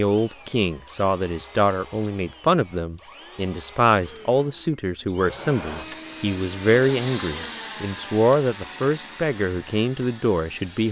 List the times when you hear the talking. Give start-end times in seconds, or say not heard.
0.0-10.8.